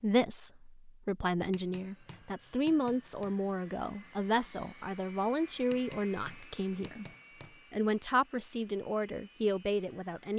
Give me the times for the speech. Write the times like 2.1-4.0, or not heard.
0.0-7.0, 7.7-10.3.